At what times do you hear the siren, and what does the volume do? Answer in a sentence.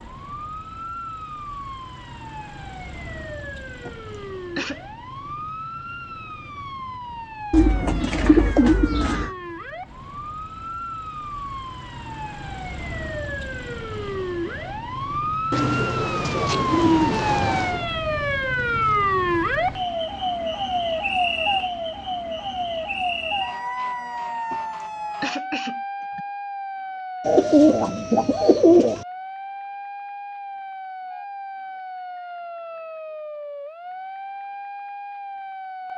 The siren can be heard from 0.0 to 35.9 s, getting louder then quieter.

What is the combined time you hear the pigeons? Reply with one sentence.
You can hear the pigeons for 6 seconds altogether.